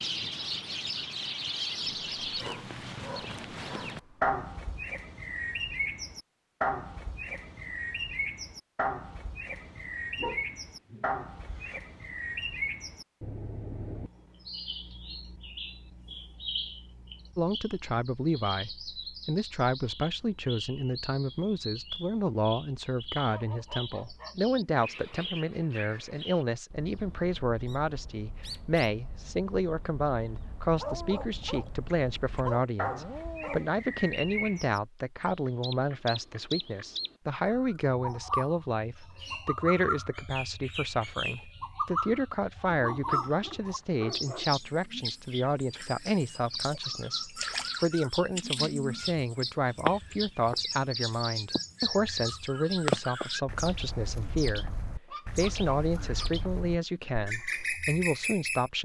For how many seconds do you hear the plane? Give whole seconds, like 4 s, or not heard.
not heard.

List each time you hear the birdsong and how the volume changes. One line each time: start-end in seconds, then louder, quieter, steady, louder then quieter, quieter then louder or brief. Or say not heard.
0.0-58.7 quieter then louder.